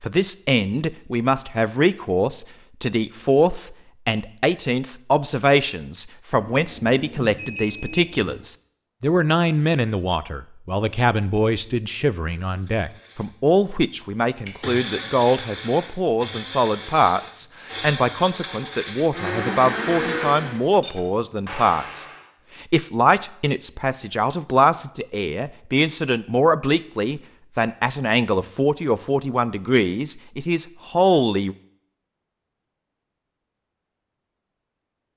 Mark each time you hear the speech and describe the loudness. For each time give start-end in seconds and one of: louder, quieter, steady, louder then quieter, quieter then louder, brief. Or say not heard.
0.0-31.6 steady.